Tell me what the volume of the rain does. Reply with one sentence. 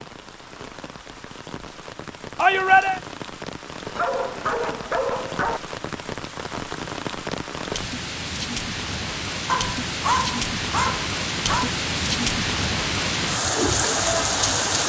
The loudness of the rain goes up.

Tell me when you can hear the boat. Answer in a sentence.
The boat can't be heard in this clip.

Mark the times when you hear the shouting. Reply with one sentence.
You can hear the shouting from 2.4 to 3.0 s.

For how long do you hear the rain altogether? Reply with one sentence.
You can hear the rain for 15 seconds altogether.